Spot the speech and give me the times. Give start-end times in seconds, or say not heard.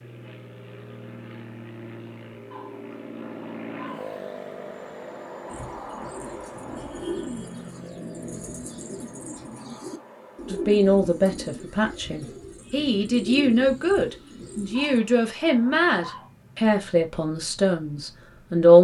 10.5-18.7.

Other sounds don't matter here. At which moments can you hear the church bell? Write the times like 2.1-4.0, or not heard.
not heard.